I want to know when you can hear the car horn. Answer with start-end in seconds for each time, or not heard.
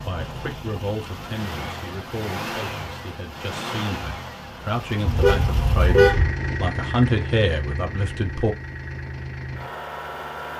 5.0-6.3.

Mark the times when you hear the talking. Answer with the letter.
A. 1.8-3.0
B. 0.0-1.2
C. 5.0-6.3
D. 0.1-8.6
D.